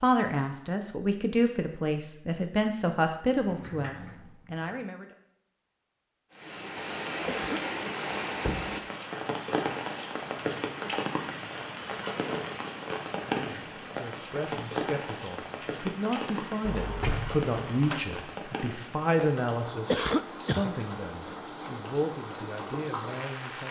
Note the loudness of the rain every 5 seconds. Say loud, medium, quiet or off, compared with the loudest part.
off, loud, loud, medium, medium.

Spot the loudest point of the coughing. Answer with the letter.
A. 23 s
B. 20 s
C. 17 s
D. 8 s
B.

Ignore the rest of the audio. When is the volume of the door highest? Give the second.
17 s.